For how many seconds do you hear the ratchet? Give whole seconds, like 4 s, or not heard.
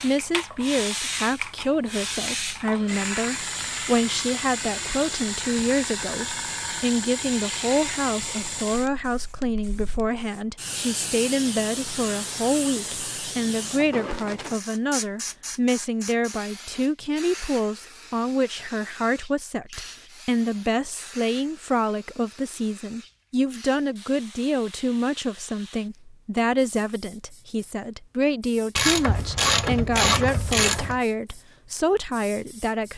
2 s.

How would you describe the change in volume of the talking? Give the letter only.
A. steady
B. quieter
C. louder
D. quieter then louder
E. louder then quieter
A.